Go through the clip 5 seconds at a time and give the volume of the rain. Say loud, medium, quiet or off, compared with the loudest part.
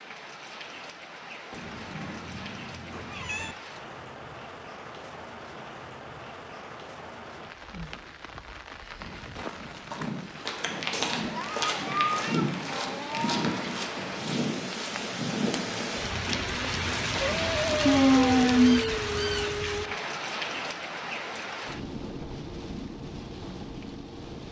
quiet, quiet, medium, loud, medium.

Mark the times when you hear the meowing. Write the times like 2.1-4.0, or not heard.
1.5-3.5, 10.9-13.6, 17.9-19.6.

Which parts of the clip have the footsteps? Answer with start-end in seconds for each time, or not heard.
8.9-17.5.